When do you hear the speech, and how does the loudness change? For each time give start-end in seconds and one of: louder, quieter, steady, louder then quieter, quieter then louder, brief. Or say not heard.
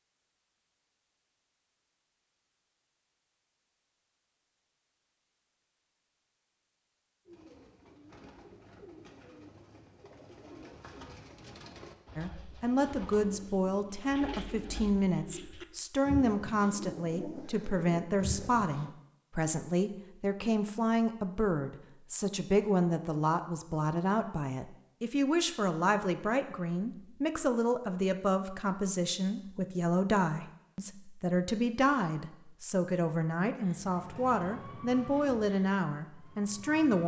12.2-37.0 steady.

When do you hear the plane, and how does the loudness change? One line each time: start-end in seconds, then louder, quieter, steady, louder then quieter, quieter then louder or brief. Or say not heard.
not heard.